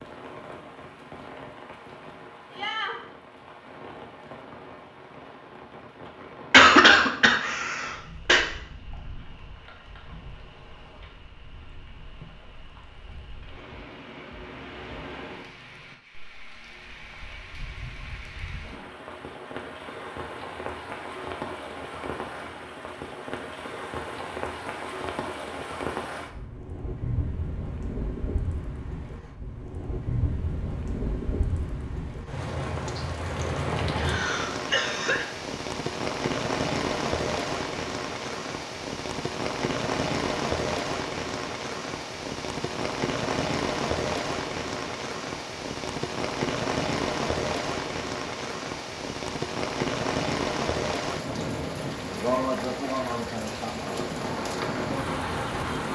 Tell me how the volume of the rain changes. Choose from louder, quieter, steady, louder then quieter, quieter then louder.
louder.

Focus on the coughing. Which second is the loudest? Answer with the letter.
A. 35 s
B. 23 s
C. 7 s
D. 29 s
C.